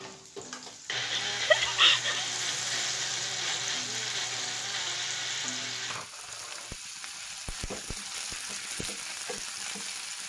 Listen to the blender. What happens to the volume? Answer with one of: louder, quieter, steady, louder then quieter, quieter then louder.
steady.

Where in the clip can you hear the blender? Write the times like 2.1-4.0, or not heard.
0.0-6.0.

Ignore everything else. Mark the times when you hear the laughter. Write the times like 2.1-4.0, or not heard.
1.1-2.3.